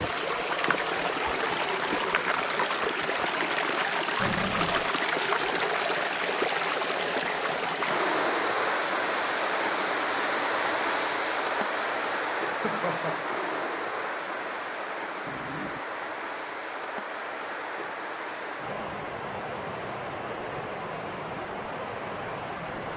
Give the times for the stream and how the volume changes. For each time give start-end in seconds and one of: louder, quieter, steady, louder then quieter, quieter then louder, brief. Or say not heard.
0.0-22.9 quieter.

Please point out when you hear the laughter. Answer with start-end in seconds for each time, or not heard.
12.5-13.2.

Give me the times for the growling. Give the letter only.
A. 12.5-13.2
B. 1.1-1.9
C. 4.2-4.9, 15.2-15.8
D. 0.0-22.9
C.